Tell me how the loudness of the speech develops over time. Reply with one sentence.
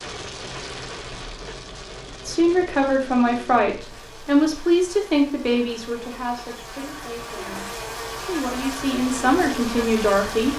The loudness of the speech goes down, then up.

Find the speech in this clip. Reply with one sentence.
You can hear the speech from 2.2 to 10.5 s.